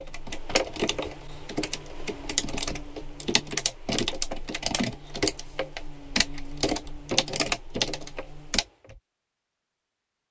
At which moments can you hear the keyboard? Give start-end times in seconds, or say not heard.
0.0-9.0.